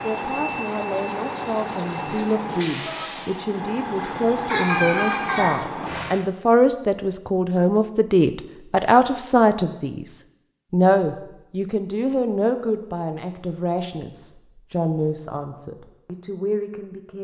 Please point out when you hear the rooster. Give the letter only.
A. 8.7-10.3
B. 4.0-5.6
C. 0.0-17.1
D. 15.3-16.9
B.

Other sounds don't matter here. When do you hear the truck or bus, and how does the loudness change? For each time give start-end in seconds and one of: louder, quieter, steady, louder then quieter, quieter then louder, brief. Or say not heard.
0.0-6.3 steady.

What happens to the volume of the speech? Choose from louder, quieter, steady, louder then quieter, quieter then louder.
louder then quieter.